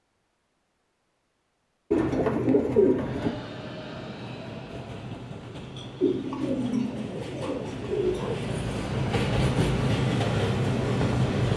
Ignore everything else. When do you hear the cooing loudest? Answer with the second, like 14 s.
3 s.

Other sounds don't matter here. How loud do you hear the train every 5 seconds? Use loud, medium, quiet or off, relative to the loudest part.
quiet, medium, loud.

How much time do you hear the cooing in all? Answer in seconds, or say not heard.
4 s.